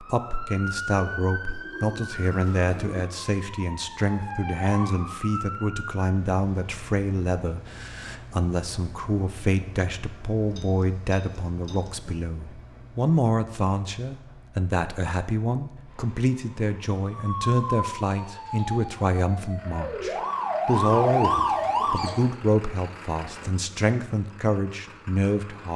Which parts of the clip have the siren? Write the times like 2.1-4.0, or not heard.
0.0-6.0, 17.0-22.2.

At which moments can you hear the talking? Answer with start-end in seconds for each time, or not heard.
0.0-25.7.